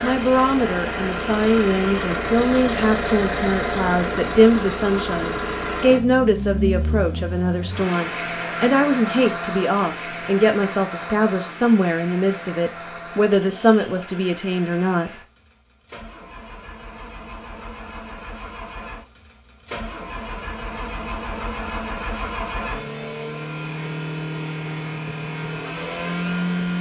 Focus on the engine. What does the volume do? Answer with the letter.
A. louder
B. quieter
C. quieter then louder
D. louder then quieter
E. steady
C.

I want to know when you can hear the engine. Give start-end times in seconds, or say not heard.
0.0-26.7.